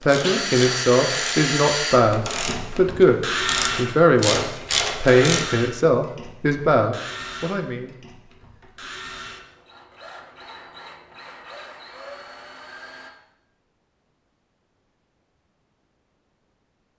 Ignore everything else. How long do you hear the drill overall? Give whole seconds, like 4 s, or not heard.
13 s.